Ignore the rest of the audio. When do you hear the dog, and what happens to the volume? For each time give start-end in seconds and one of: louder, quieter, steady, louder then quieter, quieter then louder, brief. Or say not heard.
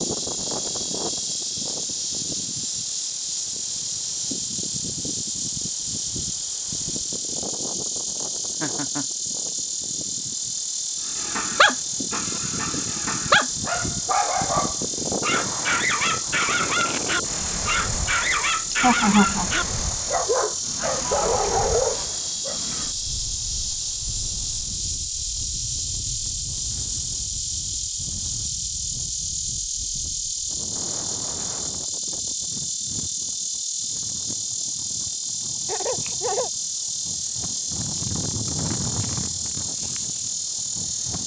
11.1-22.6 steady.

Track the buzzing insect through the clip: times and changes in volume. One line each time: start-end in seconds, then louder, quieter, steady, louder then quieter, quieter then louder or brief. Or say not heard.
0.0-41.2 steady.